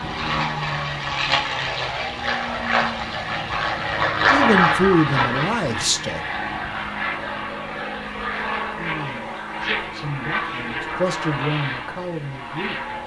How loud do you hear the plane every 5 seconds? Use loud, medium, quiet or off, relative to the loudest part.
loud, medium, medium.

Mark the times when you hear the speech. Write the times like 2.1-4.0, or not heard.
4.2-6.2, 8.8-13.0.